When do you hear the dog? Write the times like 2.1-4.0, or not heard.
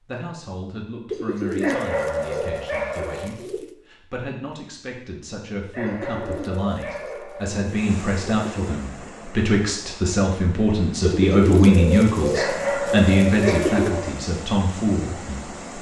1.6-3.3, 5.7-7.6, 12.3-14.2.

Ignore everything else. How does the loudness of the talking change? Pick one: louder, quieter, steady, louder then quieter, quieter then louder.
louder.